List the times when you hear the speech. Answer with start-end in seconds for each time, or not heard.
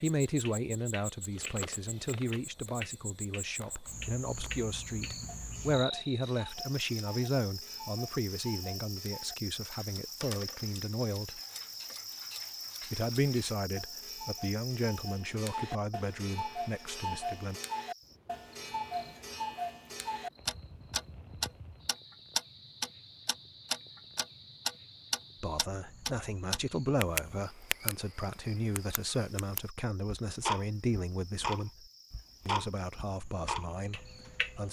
0.0-11.4, 12.9-17.6, 25.4-31.9, 32.5-34.6.